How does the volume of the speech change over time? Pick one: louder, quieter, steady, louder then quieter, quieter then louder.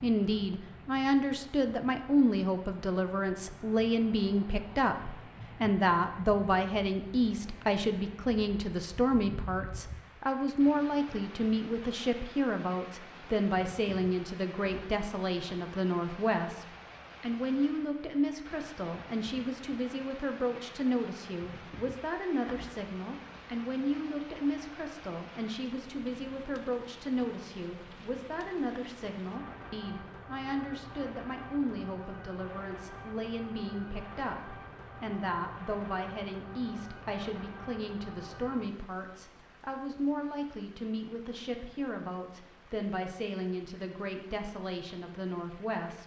quieter.